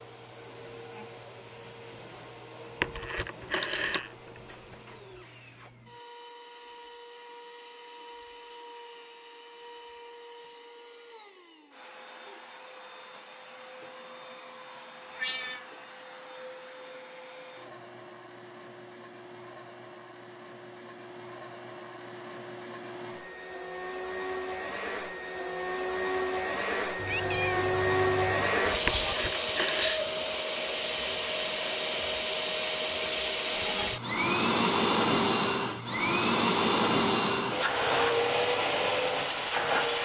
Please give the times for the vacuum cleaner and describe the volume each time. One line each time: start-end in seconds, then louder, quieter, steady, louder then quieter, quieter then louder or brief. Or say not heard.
0.0-40.0 louder.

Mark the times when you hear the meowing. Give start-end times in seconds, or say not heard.
15.1-15.7, 26.9-28.6.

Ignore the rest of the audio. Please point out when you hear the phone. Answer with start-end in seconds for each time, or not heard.
2.8-4.8, 28.9-30.1.